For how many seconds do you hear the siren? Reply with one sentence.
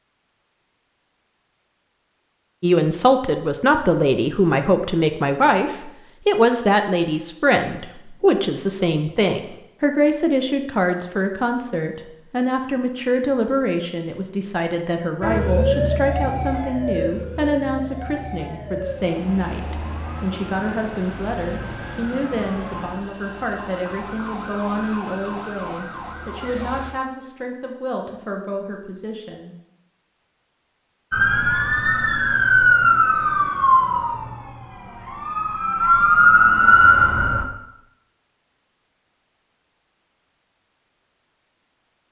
The siren can be heard for 18 seconds in total.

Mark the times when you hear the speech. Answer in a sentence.
The speech can be heard from 2.6 to 29.6 s.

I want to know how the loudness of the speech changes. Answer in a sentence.
The loudness of the speech goes down.